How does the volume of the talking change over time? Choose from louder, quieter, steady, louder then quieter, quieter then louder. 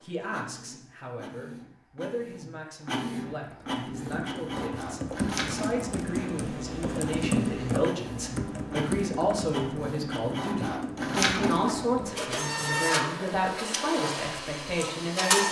louder.